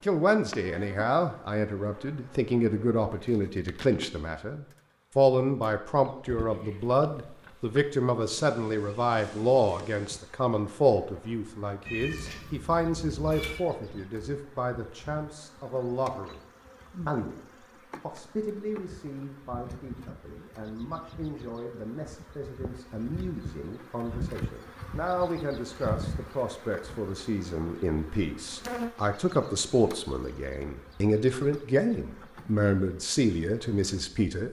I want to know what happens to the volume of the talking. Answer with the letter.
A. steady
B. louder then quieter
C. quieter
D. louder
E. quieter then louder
E.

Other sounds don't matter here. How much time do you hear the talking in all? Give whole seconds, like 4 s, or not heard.
34 s.